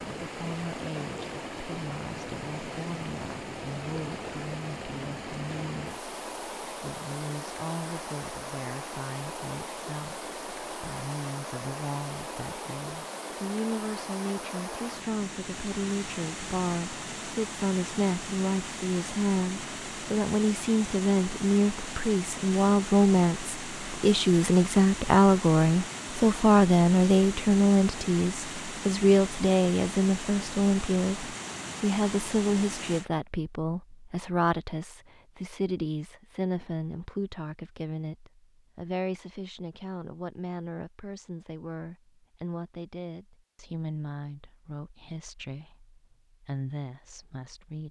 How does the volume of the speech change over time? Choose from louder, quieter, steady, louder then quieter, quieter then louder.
louder then quieter.